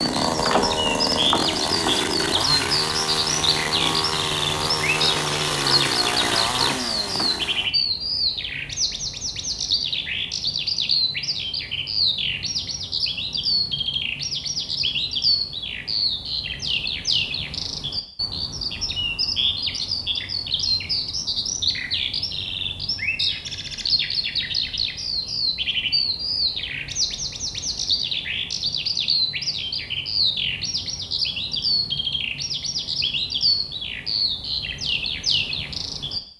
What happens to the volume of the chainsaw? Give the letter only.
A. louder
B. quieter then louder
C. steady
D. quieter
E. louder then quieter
C.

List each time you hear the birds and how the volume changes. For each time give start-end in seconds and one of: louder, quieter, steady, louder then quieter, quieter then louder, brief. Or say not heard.
0.0-36.2 steady.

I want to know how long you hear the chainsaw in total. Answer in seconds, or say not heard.
8 s.